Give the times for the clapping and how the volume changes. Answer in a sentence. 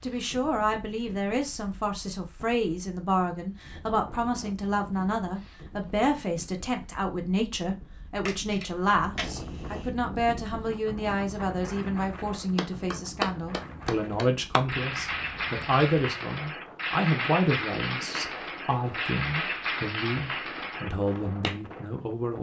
You can hear the clapping from 12.6 to 21.6 s, at a steady volume.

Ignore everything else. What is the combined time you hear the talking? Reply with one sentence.
You can hear the talking for 22 seconds altogether.